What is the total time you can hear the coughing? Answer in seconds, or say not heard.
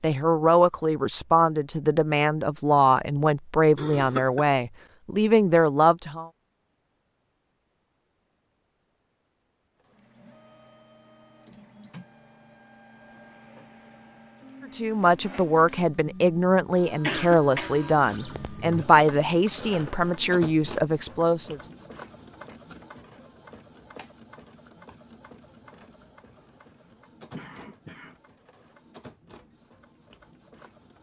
4 s.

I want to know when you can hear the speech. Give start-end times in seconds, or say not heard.
0.0-6.3, 14.7-21.6.